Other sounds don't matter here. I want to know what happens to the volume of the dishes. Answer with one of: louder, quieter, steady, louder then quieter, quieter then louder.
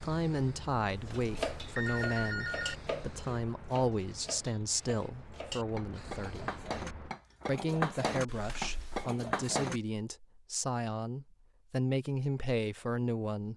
quieter then louder.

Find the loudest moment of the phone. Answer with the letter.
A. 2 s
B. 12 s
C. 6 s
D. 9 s
A.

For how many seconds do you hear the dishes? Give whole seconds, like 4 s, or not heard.
9 s.